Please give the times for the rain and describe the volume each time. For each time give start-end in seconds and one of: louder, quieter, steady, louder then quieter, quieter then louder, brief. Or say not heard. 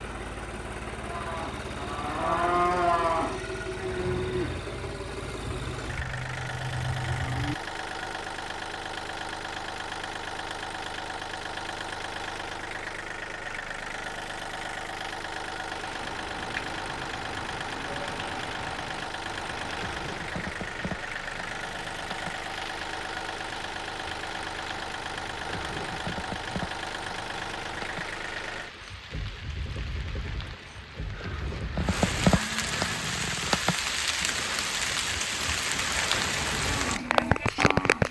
15.7-38.0 louder.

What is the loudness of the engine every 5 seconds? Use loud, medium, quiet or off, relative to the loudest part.
loud, loud, loud, loud, loud, loud, medium, off.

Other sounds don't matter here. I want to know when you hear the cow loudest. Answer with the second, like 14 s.
3 s.